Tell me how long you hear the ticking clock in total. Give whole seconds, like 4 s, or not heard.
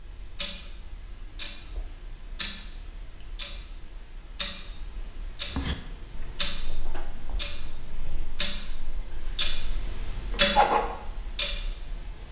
12 s.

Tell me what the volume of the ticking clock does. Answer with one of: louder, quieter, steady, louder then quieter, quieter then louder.
louder.